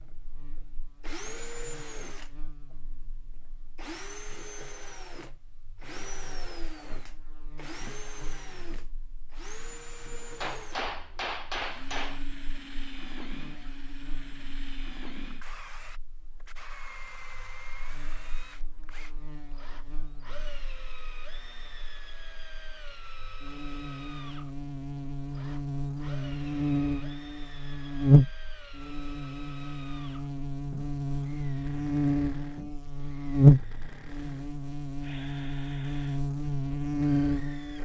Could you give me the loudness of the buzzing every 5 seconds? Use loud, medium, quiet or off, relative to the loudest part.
quiet, quiet, quiet, quiet, quiet, loud, loud, medium.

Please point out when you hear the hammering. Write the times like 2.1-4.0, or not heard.
10.4-12.2.